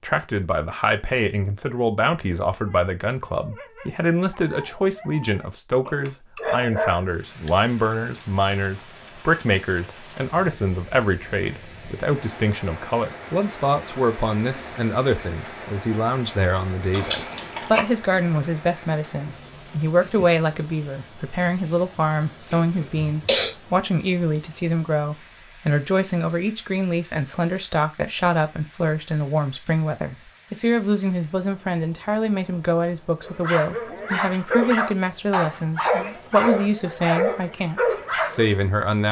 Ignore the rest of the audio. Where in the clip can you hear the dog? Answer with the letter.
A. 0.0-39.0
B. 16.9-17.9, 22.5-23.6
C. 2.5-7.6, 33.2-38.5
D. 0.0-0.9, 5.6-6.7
C.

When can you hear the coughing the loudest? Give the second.
23 s.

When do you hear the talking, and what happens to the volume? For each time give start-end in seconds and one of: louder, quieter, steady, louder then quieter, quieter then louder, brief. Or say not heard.
0.0-39.0 steady.